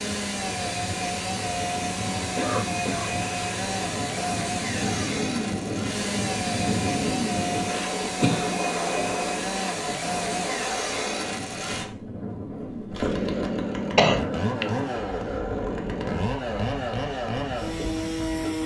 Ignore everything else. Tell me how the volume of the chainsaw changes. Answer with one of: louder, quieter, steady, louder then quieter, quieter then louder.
steady.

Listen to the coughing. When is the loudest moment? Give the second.
14 s.